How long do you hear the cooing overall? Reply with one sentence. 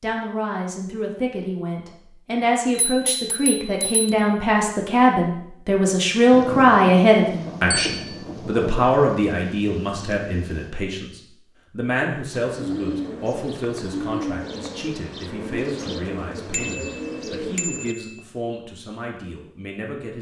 You can hear the cooing for 6 seconds altogether.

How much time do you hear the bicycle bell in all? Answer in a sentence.
The bicycle bell can be heard for 4 seconds in total.